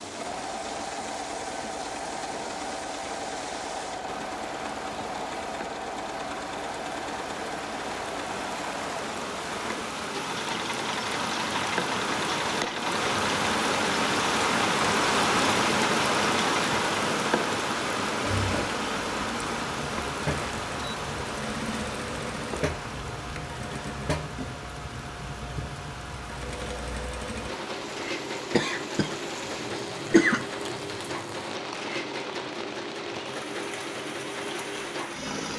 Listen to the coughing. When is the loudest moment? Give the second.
30 s.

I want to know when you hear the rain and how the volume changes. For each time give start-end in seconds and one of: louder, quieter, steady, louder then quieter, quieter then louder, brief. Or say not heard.
0.0-35.5 louder then quieter.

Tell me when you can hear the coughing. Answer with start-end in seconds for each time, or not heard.
28.5-30.4.